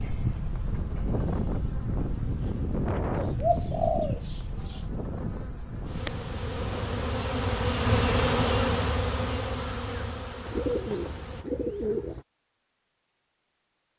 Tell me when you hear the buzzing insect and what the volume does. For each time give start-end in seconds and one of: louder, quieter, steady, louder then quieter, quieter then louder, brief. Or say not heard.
0.0-11.4 louder then quieter.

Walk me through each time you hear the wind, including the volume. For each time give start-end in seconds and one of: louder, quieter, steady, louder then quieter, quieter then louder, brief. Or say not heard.
0.0-7.1 quieter.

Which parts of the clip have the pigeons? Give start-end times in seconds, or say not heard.
3.1-4.8, 10.4-12.2.